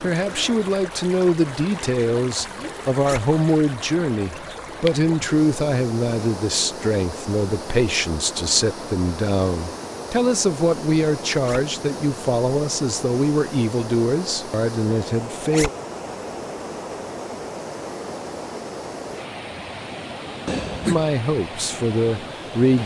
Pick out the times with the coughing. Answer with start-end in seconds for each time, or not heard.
20.4-21.1.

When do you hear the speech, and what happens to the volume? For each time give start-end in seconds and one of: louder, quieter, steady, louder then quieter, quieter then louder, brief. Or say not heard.
0.0-15.7 steady
20.8-22.8 brief.